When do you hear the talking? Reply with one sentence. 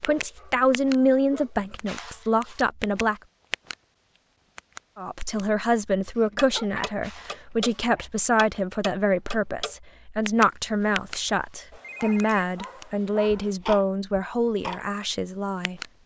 You can hear the talking from 0.0 to 3.2 s and from 5.0 to 15.8 s.